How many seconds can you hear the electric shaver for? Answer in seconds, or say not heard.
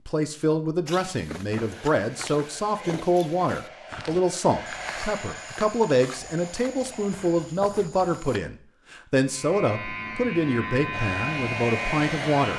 3 s.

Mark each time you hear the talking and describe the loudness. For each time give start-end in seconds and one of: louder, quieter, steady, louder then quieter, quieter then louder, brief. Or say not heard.
0.1-12.5 steady.